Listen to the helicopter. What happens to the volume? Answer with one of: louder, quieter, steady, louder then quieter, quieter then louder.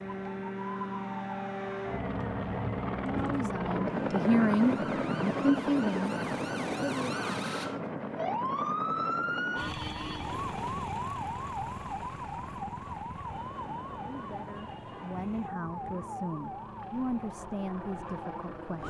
quieter.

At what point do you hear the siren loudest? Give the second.
9 s.